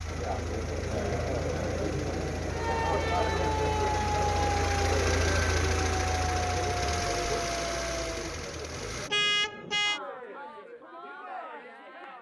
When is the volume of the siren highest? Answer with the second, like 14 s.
4 s.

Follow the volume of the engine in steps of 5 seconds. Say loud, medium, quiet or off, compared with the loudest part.
medium, loud, off.